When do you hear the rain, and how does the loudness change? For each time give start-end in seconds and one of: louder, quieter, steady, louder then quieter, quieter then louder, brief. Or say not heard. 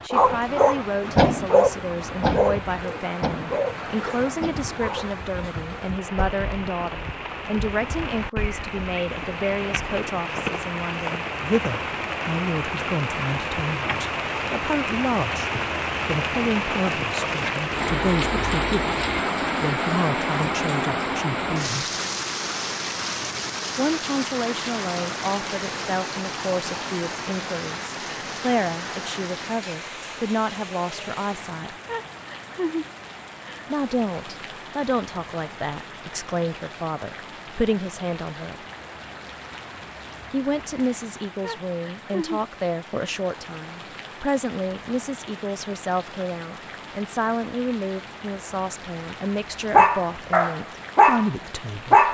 0.0-52.0 louder then quieter.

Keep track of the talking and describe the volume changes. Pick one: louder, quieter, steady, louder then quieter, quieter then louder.
steady.